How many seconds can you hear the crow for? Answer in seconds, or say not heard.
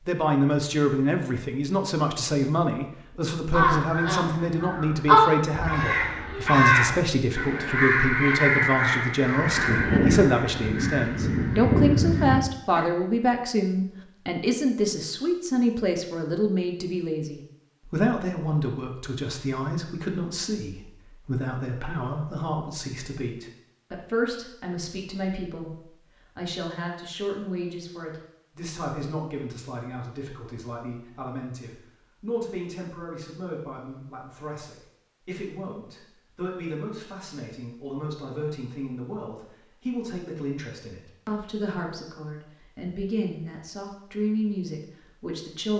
9 s.